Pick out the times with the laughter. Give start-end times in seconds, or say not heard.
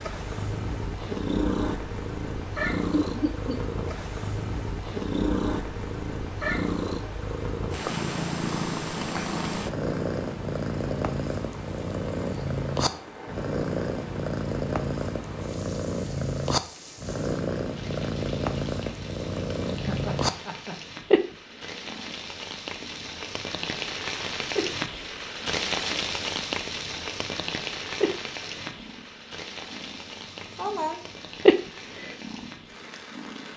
3.0-3.6, 19.8-20.8, 30.2-31.0.